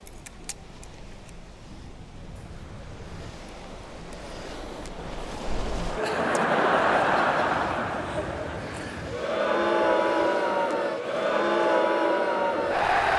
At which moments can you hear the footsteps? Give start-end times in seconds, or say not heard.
not heard.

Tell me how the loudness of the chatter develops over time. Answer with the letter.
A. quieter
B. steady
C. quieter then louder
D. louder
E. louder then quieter
D.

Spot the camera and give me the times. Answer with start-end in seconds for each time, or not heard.
0.1-1.3.